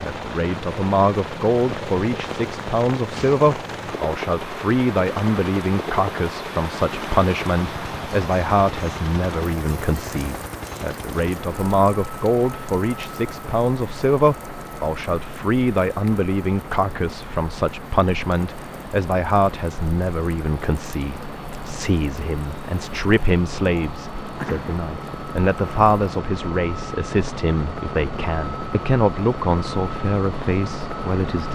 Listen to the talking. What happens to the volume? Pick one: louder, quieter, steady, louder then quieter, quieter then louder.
steady.